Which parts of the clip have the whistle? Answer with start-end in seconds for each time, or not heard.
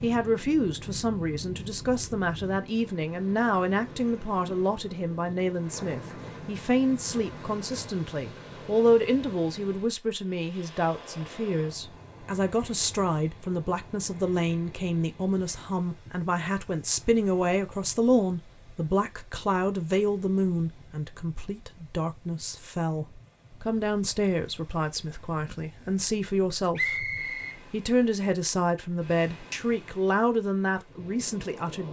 26.8-27.6.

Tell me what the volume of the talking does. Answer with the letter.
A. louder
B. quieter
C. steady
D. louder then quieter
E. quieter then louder
C.